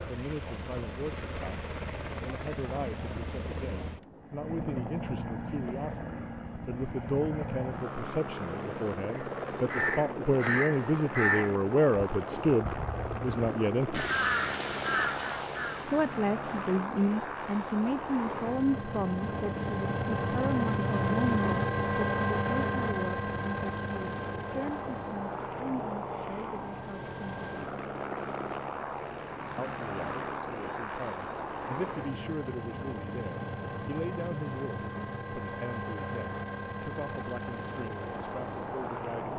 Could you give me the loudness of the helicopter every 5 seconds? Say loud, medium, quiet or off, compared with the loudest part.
medium, medium, medium, medium, loud, medium, medium, medium.